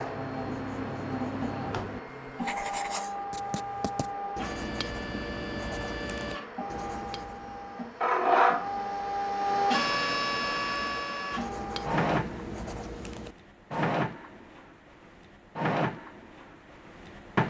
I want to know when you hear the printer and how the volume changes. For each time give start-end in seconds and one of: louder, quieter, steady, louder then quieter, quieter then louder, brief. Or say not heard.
0.0-17.4 louder then quieter.